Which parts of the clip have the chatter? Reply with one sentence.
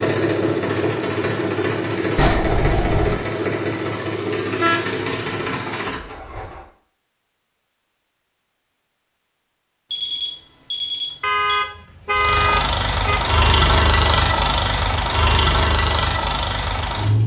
The chatter can't be heard in this clip.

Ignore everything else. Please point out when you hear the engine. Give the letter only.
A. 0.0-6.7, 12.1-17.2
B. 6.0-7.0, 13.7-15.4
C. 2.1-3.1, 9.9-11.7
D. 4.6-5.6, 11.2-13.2
A.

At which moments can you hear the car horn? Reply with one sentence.
The car horn can be heard from 4.6 to 5.6 s and from 11.2 to 13.2 s.